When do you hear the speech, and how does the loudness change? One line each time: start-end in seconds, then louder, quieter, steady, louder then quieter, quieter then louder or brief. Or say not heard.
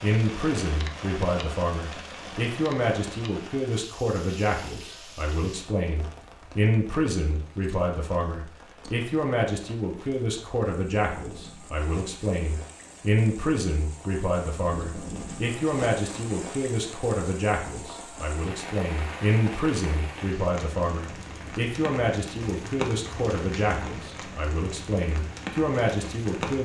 0.0-26.5 steady.